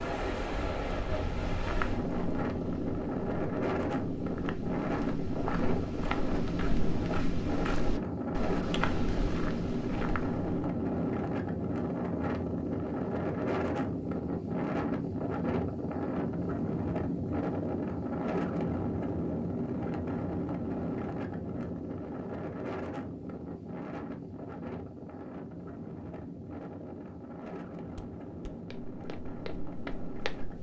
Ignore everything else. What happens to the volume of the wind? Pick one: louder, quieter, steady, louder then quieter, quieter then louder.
quieter.